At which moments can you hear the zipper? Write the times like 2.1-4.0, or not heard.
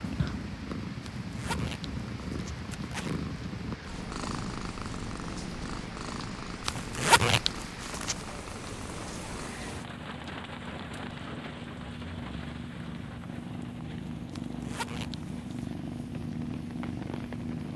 1.0-3.2, 6.7-8.2, 14.3-15.7.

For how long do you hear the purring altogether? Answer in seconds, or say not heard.
18 s.